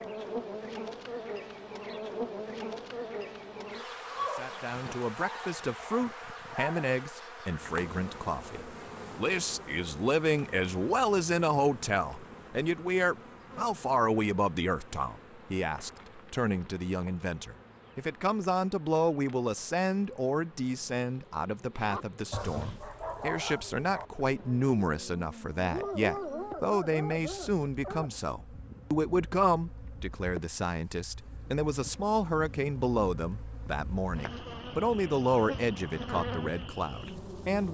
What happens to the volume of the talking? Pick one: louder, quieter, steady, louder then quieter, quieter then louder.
steady.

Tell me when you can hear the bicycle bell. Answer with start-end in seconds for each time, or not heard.
not heard.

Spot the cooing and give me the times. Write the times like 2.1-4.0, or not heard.
not heard.